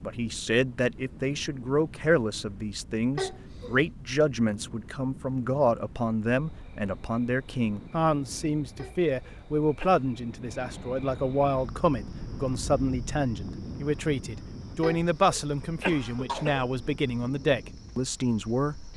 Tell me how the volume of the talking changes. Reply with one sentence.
The loudness of the talking stays about the same.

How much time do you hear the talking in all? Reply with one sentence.
You can hear the talking for 19 seconds altogether.